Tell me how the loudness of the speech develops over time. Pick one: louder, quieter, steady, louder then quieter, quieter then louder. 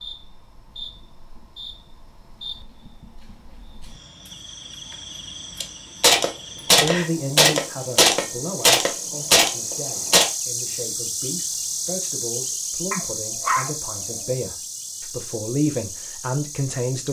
quieter then louder.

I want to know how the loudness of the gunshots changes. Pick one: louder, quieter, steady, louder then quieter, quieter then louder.
steady.